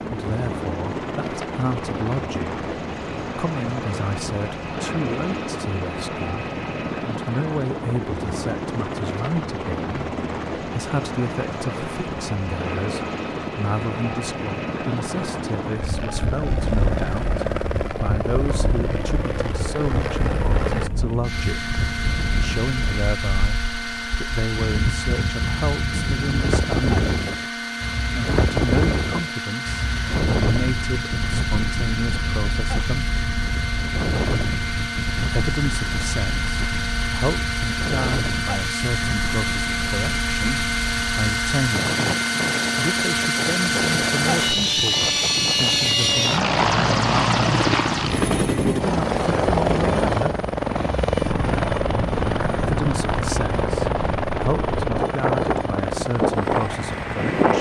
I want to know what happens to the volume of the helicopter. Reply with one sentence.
The volume of the helicopter goes up.